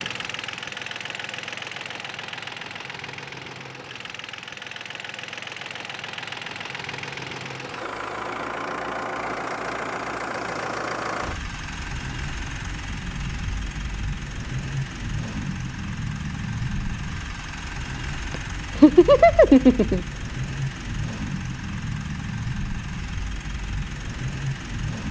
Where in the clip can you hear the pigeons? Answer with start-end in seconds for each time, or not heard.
not heard.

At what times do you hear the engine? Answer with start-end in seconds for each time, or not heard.
0.0-25.0.